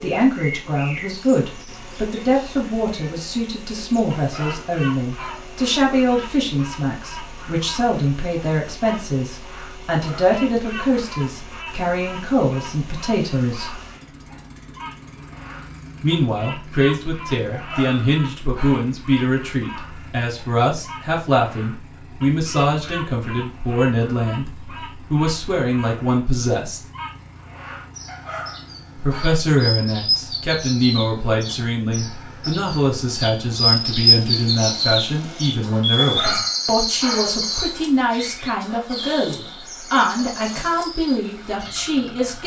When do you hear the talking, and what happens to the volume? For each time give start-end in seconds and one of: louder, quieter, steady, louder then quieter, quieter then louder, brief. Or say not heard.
0.0-13.8 steady
16.0-26.8 steady
28.9-42.4 steady.